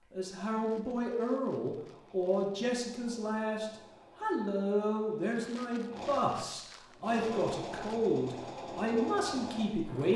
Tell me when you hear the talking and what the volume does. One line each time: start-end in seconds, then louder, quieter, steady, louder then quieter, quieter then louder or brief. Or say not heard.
0.1-10.1 steady.